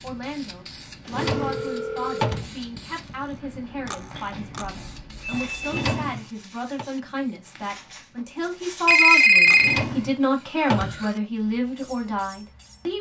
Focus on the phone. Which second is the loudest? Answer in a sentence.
The loudest moment of the phone is at 9 seconds.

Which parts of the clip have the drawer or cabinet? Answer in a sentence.
The drawer or cabinet can be heard from 1.1 to 2.5 s, from 5.6 to 6.8 s and from 9.6 to 11.1 s.